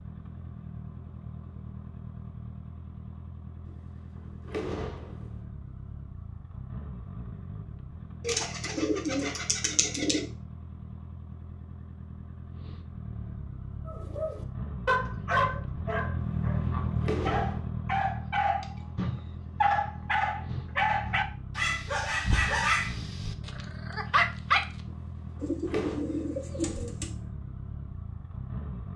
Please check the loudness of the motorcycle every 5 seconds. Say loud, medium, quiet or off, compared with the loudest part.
medium, medium, medium, loud, medium, medium.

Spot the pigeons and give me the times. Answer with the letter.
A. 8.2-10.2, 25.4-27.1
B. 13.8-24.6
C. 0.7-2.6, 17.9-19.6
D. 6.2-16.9
A.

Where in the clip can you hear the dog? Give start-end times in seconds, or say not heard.
13.8-24.6.